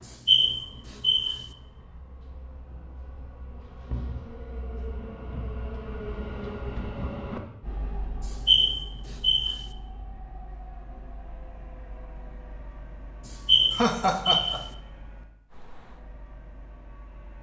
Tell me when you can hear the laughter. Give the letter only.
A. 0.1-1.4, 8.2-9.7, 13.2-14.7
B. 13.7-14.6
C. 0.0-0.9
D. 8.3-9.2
B.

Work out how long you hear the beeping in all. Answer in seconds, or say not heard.
4 s.